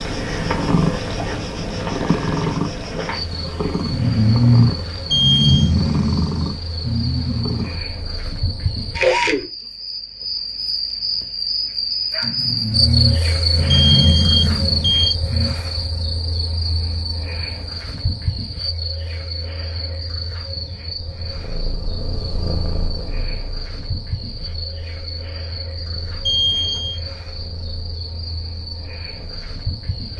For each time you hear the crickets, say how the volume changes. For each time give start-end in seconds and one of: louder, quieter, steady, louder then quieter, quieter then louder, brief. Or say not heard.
0.0-30.1 louder then quieter.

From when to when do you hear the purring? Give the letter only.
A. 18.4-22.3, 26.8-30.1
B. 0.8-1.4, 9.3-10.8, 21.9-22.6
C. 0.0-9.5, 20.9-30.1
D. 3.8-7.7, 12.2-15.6
C.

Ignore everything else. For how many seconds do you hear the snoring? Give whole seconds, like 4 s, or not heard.
7 s.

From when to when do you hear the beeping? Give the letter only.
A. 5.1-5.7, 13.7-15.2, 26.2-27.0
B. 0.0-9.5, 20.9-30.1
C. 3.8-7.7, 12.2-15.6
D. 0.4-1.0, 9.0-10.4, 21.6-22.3
A.